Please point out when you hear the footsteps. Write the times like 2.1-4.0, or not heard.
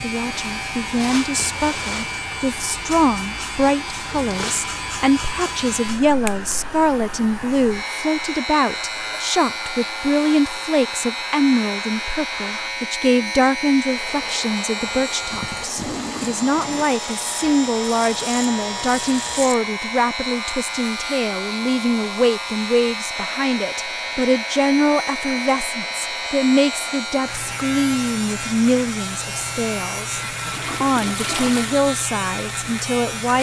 not heard.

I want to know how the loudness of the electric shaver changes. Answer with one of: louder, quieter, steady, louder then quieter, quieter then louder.
steady.